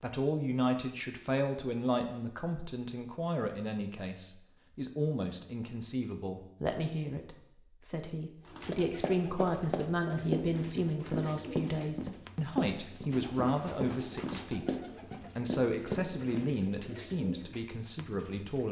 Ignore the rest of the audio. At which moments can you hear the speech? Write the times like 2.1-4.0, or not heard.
0.0-18.6.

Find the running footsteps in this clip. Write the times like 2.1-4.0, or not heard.
8.7-16.5.